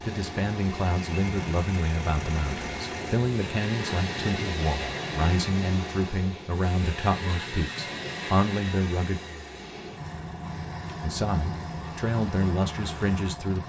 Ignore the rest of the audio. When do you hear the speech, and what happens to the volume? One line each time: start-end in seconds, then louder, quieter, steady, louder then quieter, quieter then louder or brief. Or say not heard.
0.0-9.2 steady
11.0-13.6 brief.